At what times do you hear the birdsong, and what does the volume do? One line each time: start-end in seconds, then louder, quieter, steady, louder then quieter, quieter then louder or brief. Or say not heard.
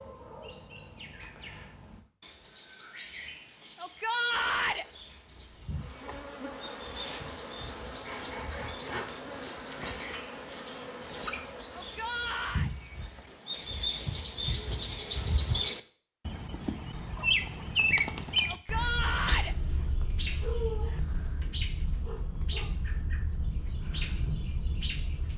0.0-25.3 louder then quieter.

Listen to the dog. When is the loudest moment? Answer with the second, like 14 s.
21 s.